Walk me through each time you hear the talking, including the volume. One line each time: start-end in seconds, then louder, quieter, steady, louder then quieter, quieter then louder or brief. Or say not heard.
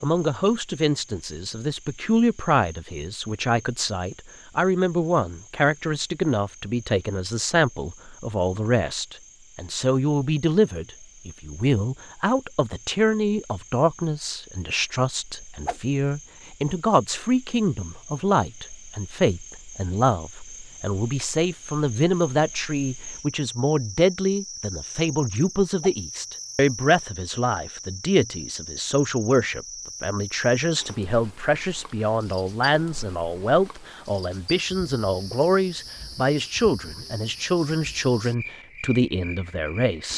0.0-40.1 steady.